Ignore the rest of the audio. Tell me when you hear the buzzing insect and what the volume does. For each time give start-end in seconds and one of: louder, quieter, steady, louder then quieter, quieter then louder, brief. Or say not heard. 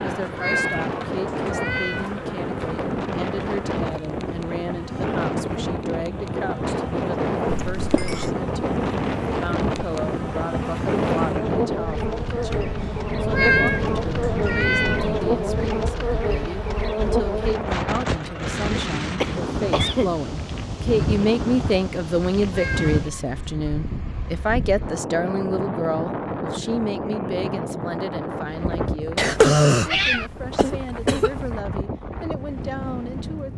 0.0-17.7 louder.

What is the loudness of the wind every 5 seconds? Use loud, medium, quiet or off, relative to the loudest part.
loud, loud, loud, loud, loud, loud, medium.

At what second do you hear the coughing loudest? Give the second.
30 s.